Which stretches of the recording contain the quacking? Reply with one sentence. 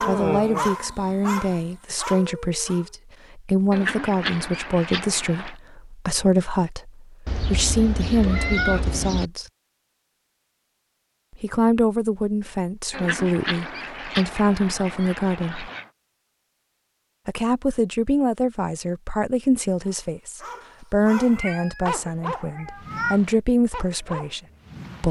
You can hear the quacking from 3.7 to 5.5 s and from 12.9 to 15.9 s.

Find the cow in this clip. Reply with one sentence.
You can hear the cow from 0.0 to 1.9 s.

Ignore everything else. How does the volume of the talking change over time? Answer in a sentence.
The loudness of the talking stays about the same.